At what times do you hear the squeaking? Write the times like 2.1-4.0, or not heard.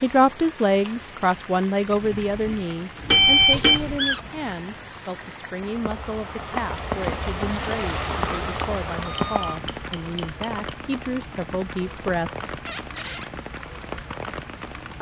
3.5-4.2, 12.7-13.3.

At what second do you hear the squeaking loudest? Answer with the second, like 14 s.
4 s.